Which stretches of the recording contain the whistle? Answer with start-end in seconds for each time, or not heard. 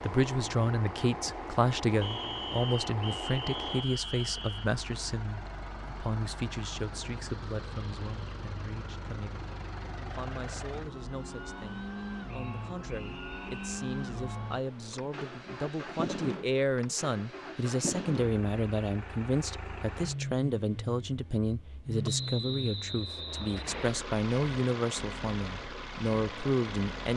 2.0-4.7, 12.2-13.9, 22.1-23.9.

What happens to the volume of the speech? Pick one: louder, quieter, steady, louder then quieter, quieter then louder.
quieter then louder.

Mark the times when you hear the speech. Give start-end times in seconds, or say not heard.
0.0-27.1.